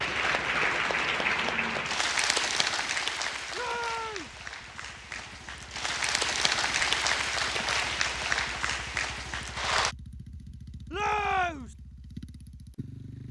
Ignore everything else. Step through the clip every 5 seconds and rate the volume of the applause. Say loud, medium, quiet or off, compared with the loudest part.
loud, loud, off.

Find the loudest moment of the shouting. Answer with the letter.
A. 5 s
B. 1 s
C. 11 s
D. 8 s
C.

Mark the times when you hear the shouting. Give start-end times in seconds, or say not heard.
3.5-4.3, 10.9-11.8.